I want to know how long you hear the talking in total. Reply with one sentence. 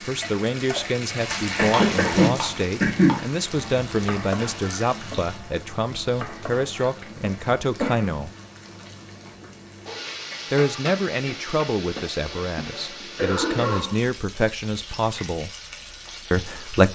The talking can be heard for 14 seconds in total.